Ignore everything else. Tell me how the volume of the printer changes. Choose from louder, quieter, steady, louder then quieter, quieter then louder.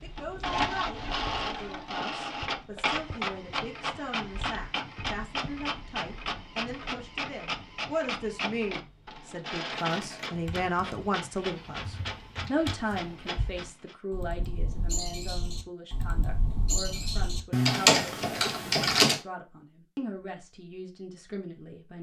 quieter.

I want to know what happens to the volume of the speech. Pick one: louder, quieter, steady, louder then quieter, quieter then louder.
louder then quieter.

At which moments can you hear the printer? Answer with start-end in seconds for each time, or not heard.
0.0-13.9.